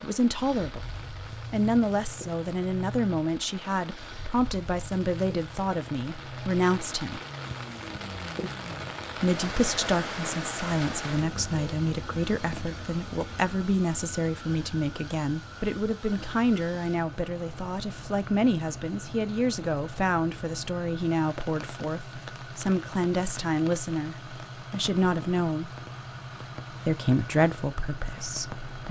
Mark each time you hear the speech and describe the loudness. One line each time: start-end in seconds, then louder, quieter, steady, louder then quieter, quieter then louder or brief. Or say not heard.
0.0-0.8 brief
1.5-7.2 steady
9.2-25.7 steady
26.9-28.8 brief.